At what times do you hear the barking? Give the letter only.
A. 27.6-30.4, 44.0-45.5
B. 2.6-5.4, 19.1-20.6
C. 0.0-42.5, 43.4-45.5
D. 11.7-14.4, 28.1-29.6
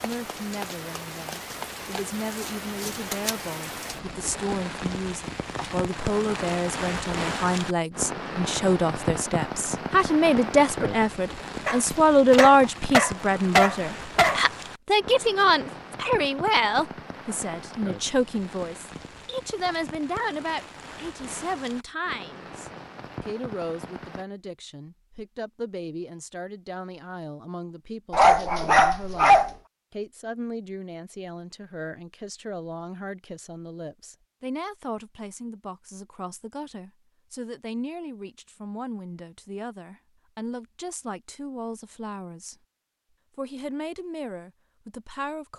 D.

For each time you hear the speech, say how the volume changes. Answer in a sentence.
You can hear the speech from 0.0 to 42.5 s, getting louder then quieter; and briefly from 43.4 to 45.5 s.